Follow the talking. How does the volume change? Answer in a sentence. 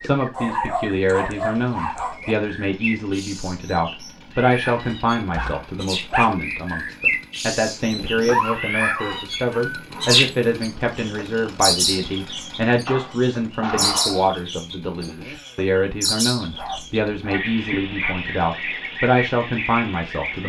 The loudness of the talking stays about the same.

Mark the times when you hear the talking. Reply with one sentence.
The talking can be heard from 0.0 to 20.4 s.